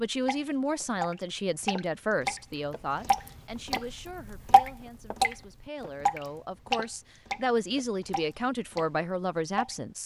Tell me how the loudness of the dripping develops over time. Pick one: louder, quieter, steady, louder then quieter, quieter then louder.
louder then quieter.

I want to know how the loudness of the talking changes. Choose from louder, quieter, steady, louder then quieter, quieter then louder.
quieter then louder.